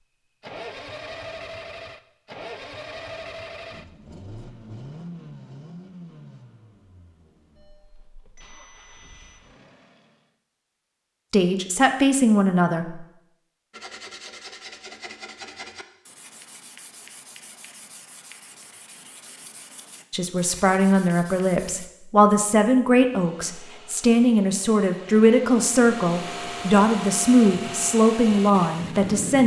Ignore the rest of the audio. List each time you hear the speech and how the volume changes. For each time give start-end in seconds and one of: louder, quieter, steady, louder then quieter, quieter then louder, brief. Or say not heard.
11.3-13.1 brief
20.1-29.4 steady.